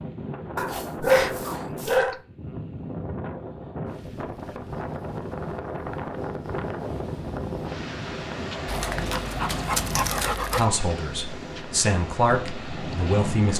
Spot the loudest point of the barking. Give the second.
1 s.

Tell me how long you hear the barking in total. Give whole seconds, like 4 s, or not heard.
4 s.